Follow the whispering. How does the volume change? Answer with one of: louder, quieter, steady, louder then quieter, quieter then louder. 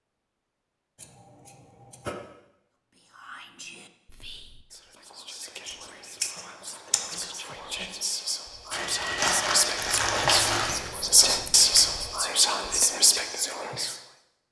louder.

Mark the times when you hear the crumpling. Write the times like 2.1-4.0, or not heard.
8.7-10.9.